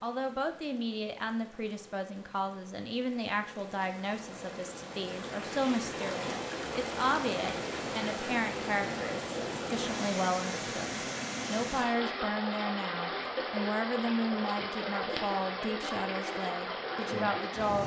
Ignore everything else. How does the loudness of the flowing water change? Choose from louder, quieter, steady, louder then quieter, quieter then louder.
louder.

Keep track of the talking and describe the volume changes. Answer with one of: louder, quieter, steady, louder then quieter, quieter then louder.
steady.